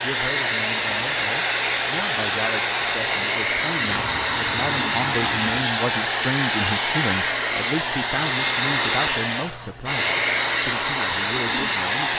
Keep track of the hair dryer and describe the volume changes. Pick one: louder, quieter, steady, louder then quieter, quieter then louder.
steady.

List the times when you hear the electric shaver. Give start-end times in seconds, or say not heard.
3.8-5.7.